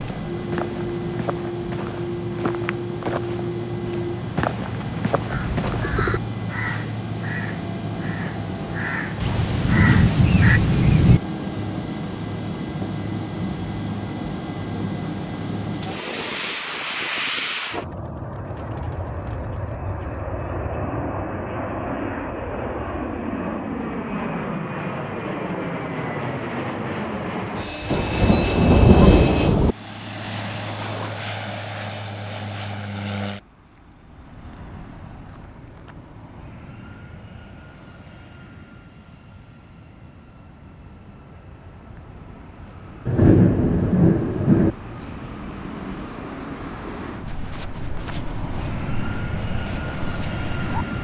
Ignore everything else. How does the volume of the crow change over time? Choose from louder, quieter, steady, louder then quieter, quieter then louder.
quieter then louder.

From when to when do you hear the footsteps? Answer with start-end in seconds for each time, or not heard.
0.0-6.0, 47.2-50.9.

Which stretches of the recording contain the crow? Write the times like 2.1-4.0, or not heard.
5.3-10.6.